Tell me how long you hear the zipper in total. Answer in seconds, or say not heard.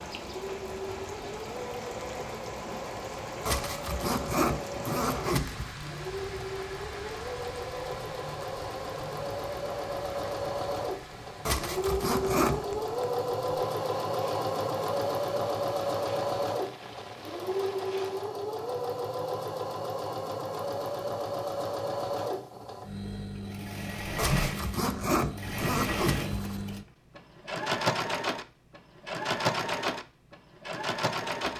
6 s.